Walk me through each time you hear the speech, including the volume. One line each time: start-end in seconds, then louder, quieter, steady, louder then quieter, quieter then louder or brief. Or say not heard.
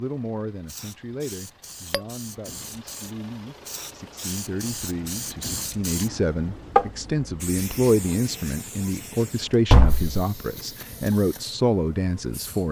0.0-12.6 louder.